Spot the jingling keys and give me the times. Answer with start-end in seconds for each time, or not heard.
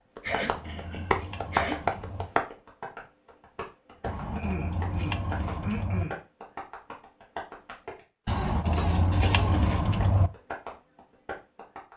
0.2-2.2, 4.0-6.0, 8.2-10.3.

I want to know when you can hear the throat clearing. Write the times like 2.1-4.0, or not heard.
0.2-1.8, 4.3-6.2, 8.2-9.7.